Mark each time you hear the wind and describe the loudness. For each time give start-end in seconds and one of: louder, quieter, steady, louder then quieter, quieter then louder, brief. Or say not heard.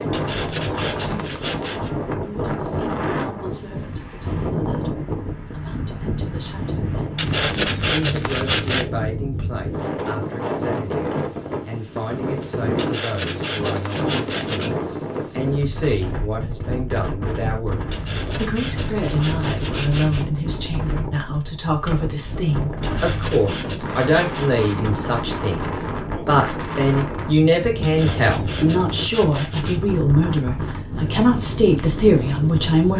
0.0-32.9 steady.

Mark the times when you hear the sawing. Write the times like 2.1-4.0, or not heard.
0.1-1.9, 7.2-8.8, 12.8-14.7, 17.9-20.2, 22.8-24.6, 27.8-29.8.